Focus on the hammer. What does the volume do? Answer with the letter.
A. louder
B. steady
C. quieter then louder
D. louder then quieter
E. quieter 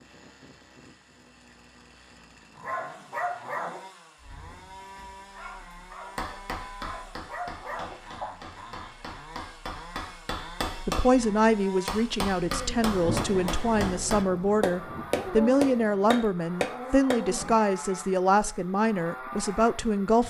A.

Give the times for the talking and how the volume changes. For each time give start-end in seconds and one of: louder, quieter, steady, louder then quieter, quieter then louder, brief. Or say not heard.
10.8-20.2 steady.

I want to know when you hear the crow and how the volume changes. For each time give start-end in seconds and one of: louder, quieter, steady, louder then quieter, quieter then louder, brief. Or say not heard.
not heard.